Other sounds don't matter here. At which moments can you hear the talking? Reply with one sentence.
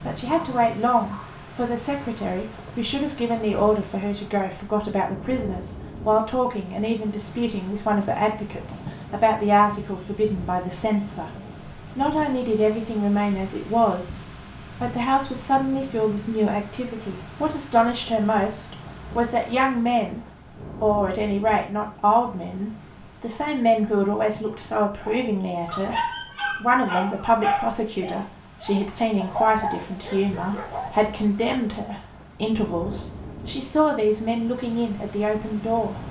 You can hear the talking from 0.1 to 11.3 s, from 11.9 to 20.2 s and from 20.8 to 36.0 s.